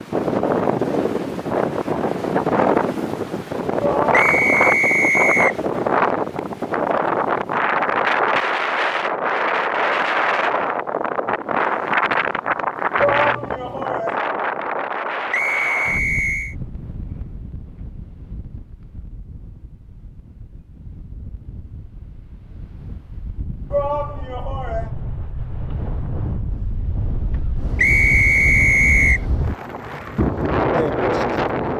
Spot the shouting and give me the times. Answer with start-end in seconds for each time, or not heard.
3.8-4.5, 12.9-14.2, 23.7-24.9.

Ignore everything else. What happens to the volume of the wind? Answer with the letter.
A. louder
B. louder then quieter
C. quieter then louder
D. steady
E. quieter
C.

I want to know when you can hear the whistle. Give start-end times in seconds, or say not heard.
4.1-5.6, 15.3-16.6, 27.8-29.2.